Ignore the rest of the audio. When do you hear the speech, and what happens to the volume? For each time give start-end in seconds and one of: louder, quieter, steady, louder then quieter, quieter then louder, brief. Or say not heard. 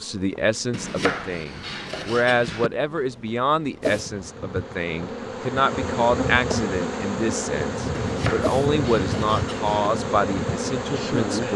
0.0-11.5 steady.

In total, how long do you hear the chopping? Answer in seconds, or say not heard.
4 s.